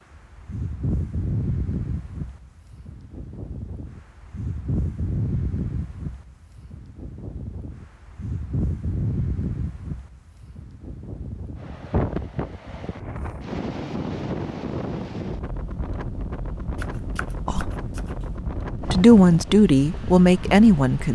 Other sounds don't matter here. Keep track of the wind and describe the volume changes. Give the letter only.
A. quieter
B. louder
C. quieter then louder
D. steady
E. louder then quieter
D.